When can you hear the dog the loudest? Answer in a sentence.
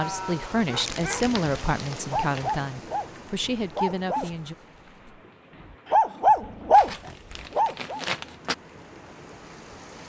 The volume of the dog peaks at 7 seconds.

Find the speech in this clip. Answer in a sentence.
The speech can be heard from 0.0 to 4.5 s.